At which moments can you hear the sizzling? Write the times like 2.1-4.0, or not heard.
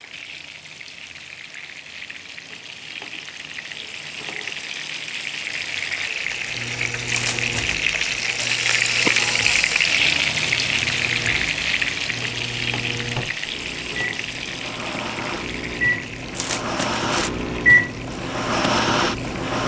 0.0-19.6.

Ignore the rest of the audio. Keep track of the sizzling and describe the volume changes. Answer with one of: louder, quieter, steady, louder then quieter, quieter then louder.
louder then quieter.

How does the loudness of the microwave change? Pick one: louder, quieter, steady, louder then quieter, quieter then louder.
louder.